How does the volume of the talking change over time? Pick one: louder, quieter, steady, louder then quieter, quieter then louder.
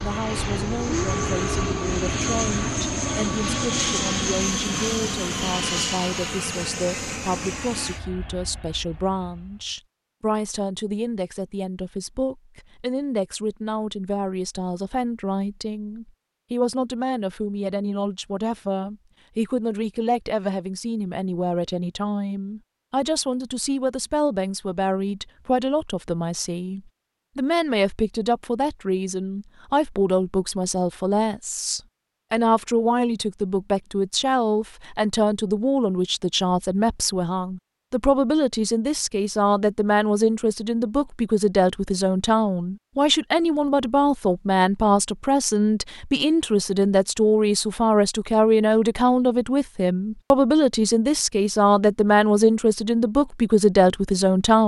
louder.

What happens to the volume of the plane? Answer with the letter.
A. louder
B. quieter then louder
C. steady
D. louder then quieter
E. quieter
E.